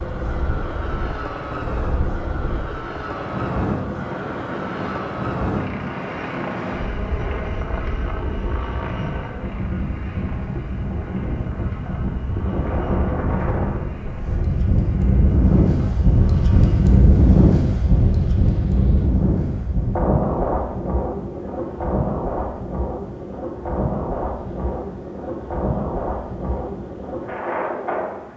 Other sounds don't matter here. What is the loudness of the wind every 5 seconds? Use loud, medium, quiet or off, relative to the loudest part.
medium, medium, medium, loud, medium, medium.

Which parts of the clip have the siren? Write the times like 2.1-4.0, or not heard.
not heard.